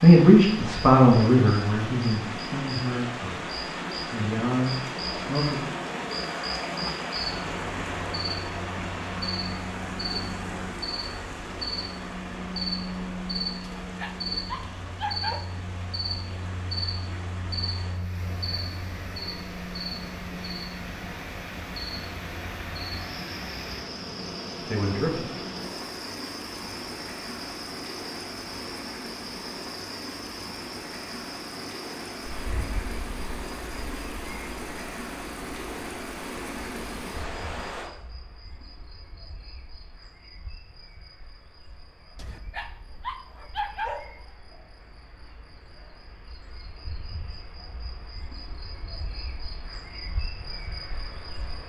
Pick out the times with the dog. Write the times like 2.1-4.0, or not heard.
13.8-15.4, 42.1-44.1.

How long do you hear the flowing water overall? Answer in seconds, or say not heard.
38 s.